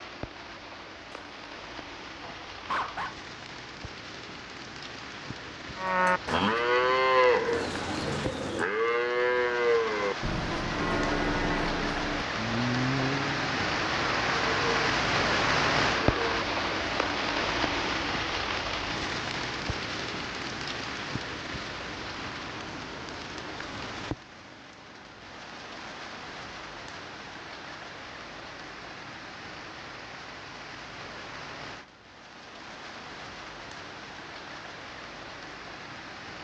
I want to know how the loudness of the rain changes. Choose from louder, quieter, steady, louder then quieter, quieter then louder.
louder then quieter.